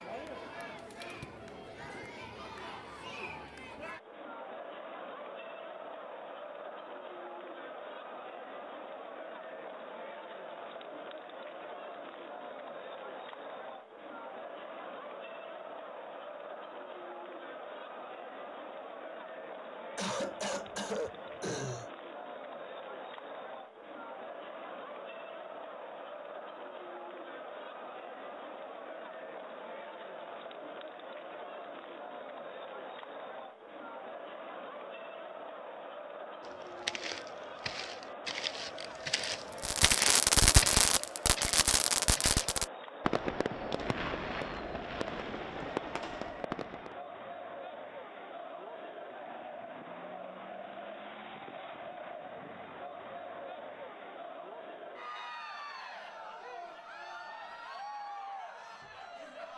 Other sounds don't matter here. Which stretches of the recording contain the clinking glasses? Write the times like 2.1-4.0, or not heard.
not heard.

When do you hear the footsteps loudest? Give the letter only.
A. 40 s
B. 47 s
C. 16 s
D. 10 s
A.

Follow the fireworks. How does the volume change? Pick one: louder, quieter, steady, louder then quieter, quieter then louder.
quieter.